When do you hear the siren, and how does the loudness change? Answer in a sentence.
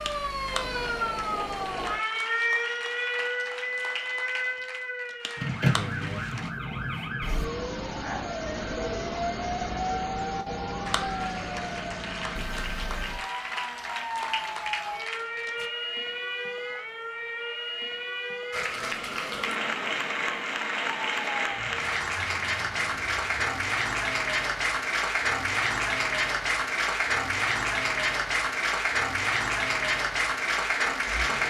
You can hear the siren from 0.0 to 31.4 s, getting quieter.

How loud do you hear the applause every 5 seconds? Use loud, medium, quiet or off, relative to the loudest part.
quiet, quiet, medium, medium, loud, loud, loud.